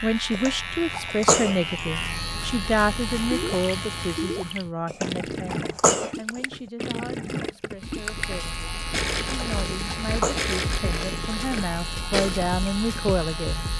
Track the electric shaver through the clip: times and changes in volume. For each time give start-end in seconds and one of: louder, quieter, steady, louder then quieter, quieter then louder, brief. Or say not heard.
0.0-4.7 steady
7.8-13.7 steady.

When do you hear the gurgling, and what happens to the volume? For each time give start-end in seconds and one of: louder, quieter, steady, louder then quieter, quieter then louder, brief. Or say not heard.
3.3-13.2 steady.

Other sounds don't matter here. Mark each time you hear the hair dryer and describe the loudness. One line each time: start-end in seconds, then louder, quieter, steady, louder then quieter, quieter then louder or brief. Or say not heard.
not heard.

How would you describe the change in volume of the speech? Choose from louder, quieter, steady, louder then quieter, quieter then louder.
quieter then louder.